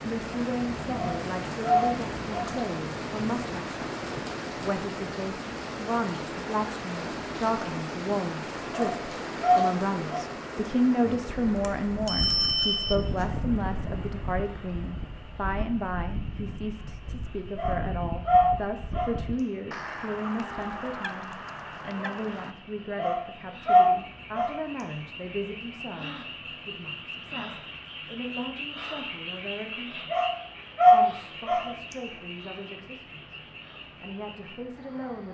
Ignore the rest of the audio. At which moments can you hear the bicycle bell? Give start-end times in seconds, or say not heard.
11.6-13.3.